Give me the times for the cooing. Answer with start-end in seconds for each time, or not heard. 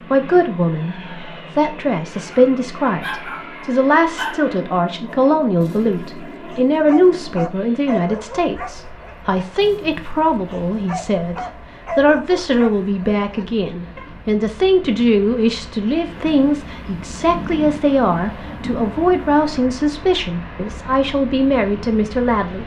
not heard.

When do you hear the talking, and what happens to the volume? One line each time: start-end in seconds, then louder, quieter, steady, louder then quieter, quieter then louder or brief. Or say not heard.
0.1-22.6 steady.